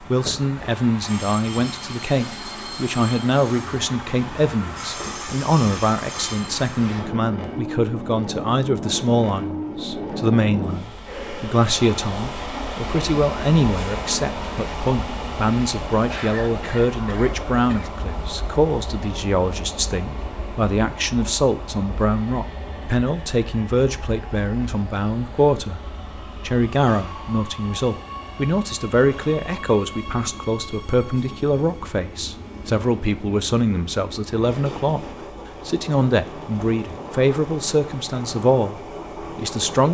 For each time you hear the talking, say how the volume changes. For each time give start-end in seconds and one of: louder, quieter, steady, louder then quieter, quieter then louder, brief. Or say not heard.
0.1-25.8 steady
26.4-35.0 steady
35.6-39.8 quieter.